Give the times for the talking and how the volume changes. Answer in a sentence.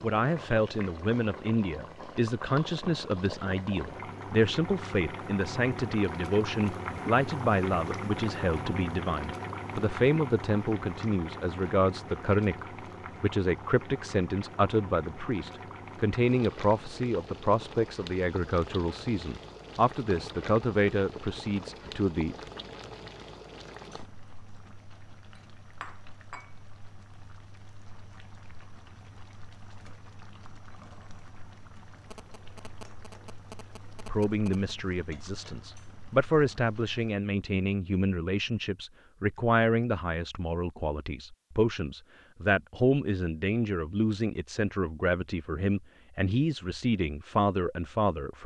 The talking can be heard from 0.0 to 22.4 s, at a steady volume; and from 34.0 to 48.4 s, at a steady volume.